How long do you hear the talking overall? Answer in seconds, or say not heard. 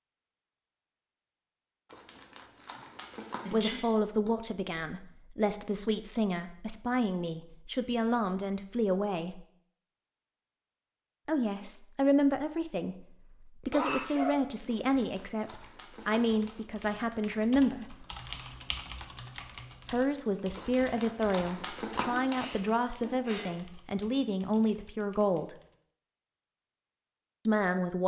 19 s.